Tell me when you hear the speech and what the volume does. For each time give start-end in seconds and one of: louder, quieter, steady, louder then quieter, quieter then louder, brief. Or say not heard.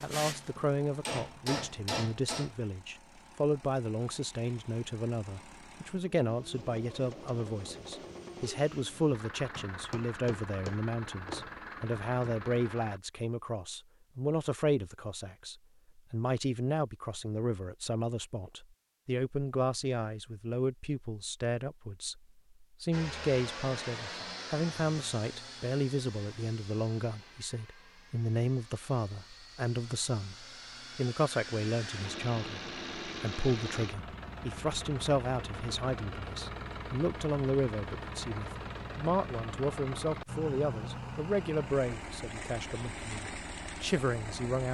0.0-44.6 steady.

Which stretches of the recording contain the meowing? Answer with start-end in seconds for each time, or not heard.
not heard.